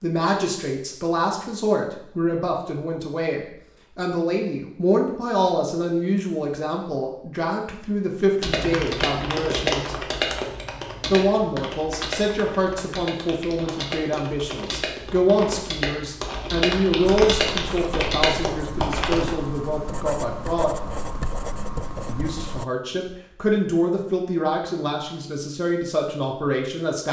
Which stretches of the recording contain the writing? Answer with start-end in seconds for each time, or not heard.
17.0-22.6.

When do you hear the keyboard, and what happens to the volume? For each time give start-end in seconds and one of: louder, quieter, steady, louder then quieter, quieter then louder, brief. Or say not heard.
8.4-19.4 quieter then louder.